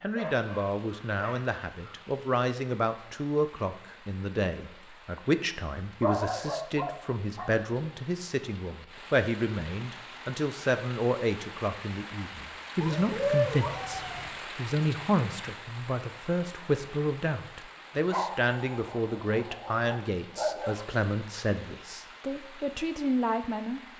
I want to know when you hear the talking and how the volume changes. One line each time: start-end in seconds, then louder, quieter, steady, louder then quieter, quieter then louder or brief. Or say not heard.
0.0-23.8 steady.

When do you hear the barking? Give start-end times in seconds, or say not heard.
0.1-1.9, 6.0-7.5, 12.8-14.3, 18.1-20.9.